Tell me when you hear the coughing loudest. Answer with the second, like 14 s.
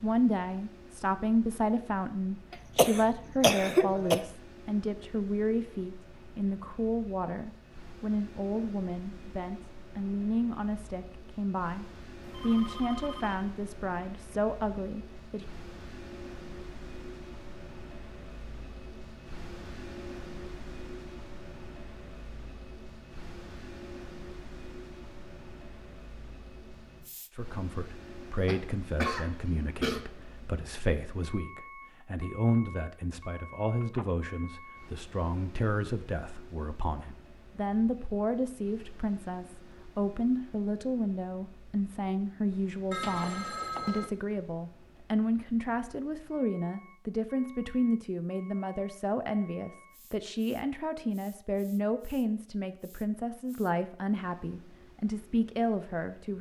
4 s.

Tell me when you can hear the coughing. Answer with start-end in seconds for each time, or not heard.
2.5-4.2, 28.4-30.0.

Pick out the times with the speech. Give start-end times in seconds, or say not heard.
0.0-15.4, 27.3-56.3.